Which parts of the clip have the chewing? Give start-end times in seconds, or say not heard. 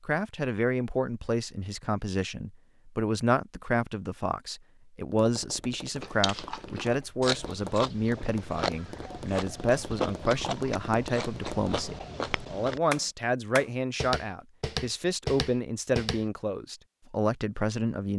6.0-12.8.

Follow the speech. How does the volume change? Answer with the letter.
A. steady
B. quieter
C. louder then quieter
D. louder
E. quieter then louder
A.